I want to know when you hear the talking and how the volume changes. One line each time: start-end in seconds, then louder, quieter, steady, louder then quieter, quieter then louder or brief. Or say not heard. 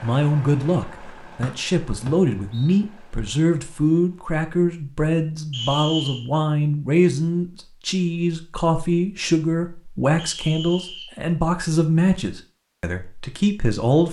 0.0-14.0 steady.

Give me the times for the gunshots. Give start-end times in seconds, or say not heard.
not heard.